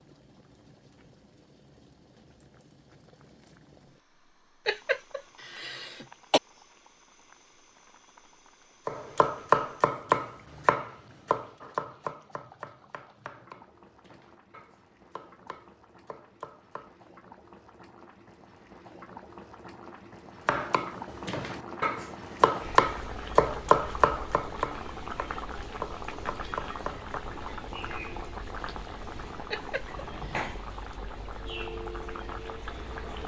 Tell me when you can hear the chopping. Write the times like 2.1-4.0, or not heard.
8.8-17.1, 20.4-27.1.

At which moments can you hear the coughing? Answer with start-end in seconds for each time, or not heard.
4.7-6.4, 29.5-30.4.